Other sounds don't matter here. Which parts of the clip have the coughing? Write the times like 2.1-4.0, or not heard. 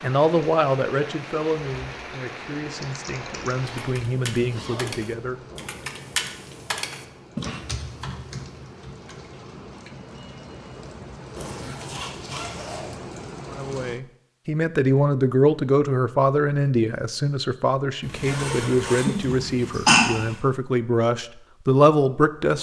19.1-20.1.